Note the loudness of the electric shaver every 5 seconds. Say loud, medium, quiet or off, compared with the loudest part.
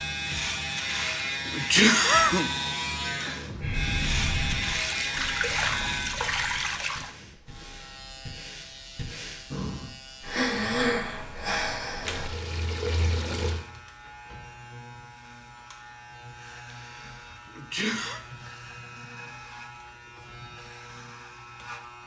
loud, medium, quiet, quiet, quiet.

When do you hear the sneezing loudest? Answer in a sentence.
The volume of the sneezing peaks at 2 seconds.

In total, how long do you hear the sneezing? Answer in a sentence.
You can hear the sneezing for 3 seconds altogether.